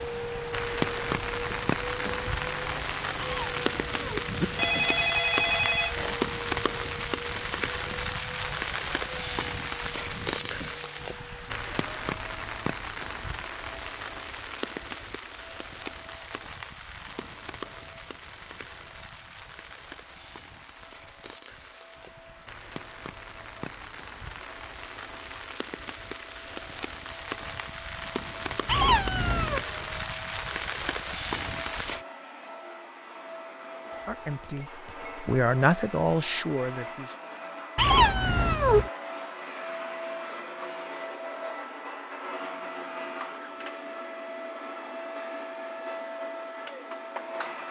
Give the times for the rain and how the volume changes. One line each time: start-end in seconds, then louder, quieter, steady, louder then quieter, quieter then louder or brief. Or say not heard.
0.0-32.0 quieter then louder.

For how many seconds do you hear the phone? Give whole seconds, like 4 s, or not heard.
3 s.